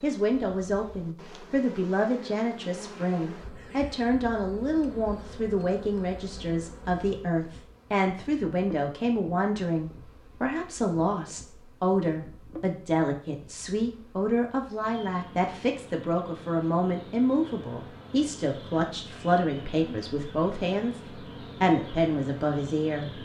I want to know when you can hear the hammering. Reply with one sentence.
The hammering can't be heard in this clip.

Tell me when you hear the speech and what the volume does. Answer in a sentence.
The speech can be heard from 0.0 to 21.0 s, at a steady volume; and briefly from 21.6 to 23.2 s.